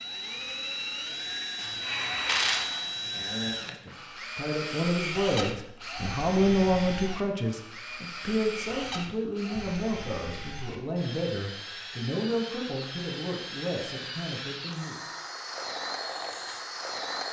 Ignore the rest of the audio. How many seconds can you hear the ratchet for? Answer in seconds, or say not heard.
2 s.